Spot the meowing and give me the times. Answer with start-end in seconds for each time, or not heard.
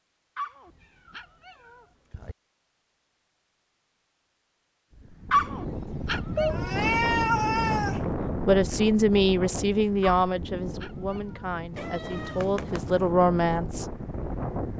0.7-2.4, 6.3-8.1, 11.8-13.1.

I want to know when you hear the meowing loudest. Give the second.
7 s.